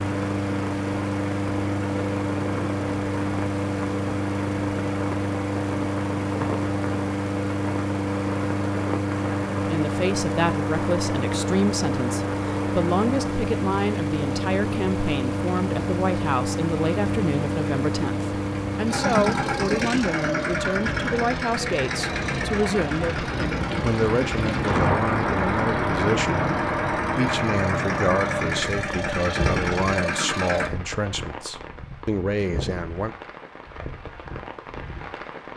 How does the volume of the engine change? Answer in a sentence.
The loudness of the engine stays about the same.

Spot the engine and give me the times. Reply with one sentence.
You can hear the engine from 0.0 to 30.7 s.